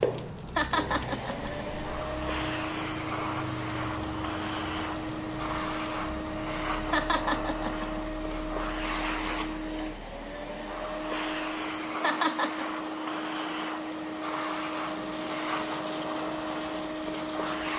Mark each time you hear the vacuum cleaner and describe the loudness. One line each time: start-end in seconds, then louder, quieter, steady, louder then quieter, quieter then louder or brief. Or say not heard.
0.0-17.7 steady.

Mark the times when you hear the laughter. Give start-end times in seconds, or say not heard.
0.6-1.6, 6.9-8.0, 12.0-12.7.